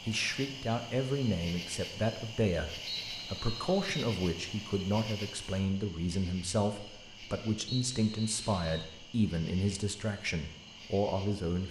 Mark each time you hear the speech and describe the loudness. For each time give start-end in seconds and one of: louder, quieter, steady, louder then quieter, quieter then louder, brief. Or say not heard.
0.1-11.6 steady.